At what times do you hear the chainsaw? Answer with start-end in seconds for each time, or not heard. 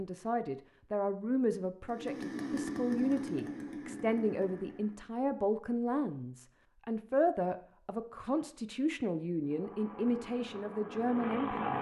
1.9-5.0, 9.4-11.7.